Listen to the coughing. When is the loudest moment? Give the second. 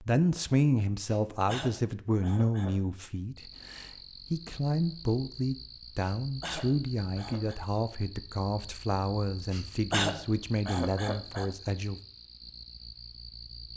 10 s.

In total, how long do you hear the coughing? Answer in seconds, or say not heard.
5 s.